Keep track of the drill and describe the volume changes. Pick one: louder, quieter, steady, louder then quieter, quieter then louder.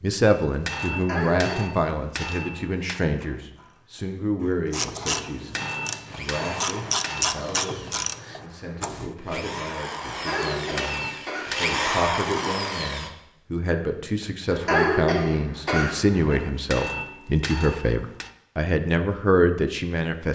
quieter then louder.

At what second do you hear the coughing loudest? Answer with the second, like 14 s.
15 s.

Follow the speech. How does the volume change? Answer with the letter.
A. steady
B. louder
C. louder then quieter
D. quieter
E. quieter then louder
E.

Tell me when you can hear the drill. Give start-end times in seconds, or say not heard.
6.0-13.1.